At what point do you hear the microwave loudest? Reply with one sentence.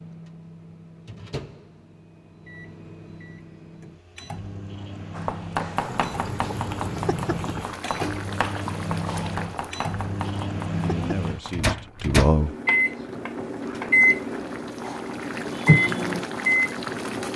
The loudest moment of the microwave is at 16 seconds.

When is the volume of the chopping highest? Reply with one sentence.
The volume of the chopping peaks at 6 seconds.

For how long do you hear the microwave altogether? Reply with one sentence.
The microwave can be heard for 17 seconds in total.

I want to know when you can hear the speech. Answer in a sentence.
You can hear the speech from 10.7 to 12.5 s.